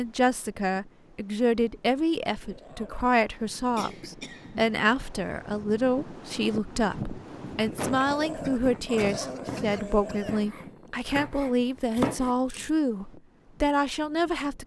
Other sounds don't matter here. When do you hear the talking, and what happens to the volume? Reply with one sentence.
You can hear the talking from 0.0 to 14.6 s, at a steady volume.